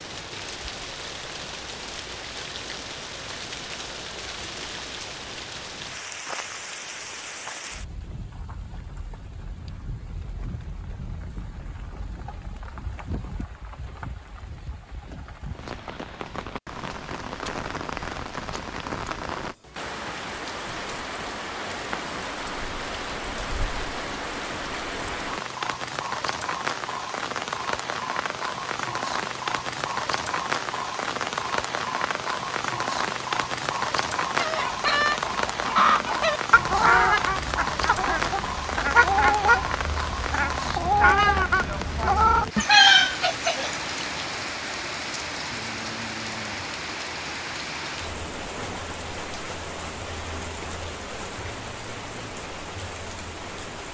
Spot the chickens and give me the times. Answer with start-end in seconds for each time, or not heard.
34.4-44.0.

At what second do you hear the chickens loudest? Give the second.
43 s.